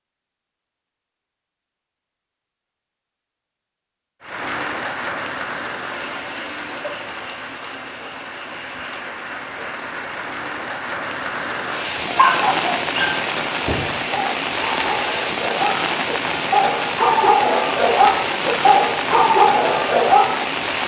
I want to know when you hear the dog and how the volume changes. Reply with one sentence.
The dog can be heard from 12.1 to 20.5 s, getting louder.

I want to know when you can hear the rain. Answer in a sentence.
You can hear the rain from 4.2 to 20.8 s.